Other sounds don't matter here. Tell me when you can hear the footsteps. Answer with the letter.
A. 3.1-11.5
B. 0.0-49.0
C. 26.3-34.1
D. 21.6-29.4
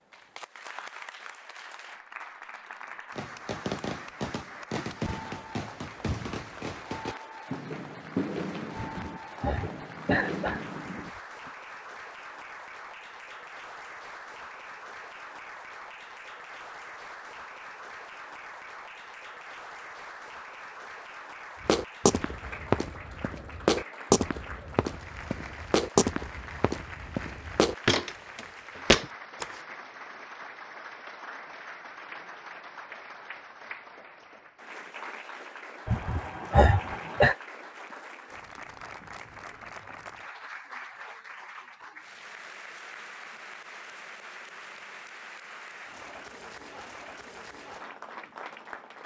D.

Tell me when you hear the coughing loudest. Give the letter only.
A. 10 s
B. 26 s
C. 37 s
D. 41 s
C.